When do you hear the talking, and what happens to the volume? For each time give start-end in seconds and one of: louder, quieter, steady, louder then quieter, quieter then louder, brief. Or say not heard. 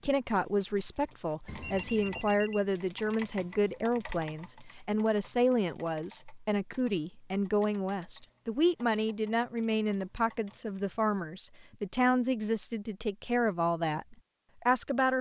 0.0-15.1 steady.